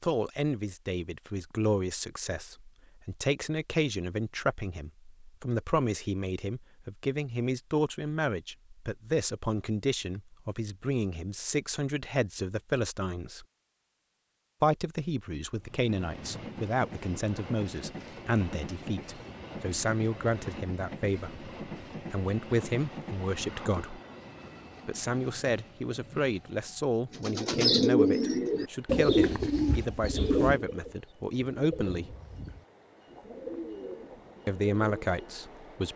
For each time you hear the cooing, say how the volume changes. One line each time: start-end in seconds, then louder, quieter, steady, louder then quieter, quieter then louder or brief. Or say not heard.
27.1-35.4 quieter.